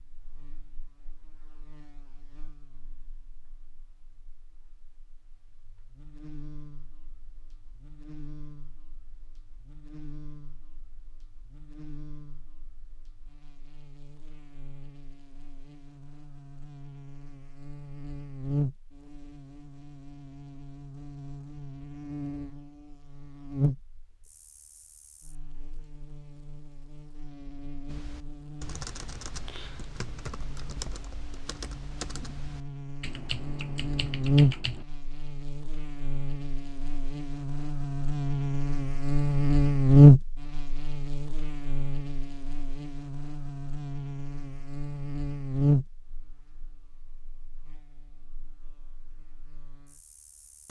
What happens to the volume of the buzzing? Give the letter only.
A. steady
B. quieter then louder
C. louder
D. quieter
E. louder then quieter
E.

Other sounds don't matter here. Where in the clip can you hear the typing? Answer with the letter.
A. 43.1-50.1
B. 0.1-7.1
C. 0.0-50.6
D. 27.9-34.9
D.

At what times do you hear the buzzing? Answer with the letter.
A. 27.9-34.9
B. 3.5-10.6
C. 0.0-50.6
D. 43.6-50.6
C.